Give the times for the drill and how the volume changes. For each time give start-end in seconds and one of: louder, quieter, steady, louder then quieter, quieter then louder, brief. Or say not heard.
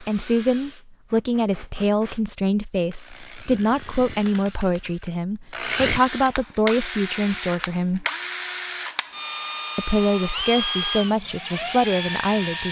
0.0-12.6 louder.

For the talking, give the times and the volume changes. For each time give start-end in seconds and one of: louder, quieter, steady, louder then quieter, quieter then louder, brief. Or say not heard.
0.0-8.1 steady
9.8-12.6 brief.